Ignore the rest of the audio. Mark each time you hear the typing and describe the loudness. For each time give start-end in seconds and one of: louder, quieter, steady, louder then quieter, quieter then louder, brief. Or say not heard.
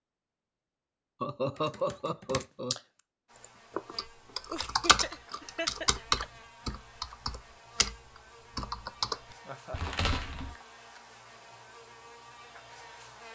1.6-8.0 louder then quieter
8.6-10.6 brief.